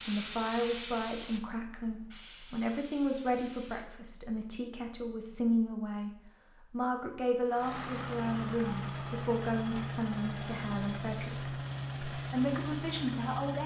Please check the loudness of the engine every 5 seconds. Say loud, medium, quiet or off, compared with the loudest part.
off, loud, loud.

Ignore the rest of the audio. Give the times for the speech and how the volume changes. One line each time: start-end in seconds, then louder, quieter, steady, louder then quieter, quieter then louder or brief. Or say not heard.
0.1-13.6 steady.